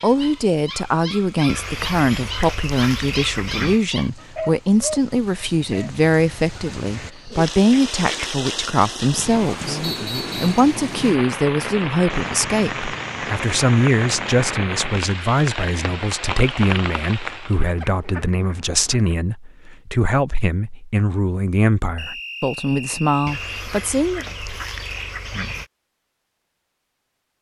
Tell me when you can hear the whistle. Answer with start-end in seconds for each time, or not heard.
9.8-10.6, 21.9-23.6.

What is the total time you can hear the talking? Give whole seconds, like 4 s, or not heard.
24 s.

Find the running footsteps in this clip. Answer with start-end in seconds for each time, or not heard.
not heard.